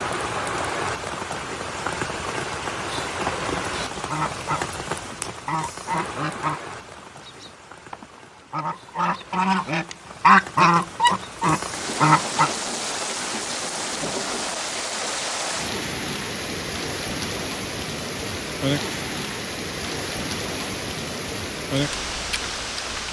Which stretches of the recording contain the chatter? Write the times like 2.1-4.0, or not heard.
not heard.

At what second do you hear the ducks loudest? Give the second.
10 s.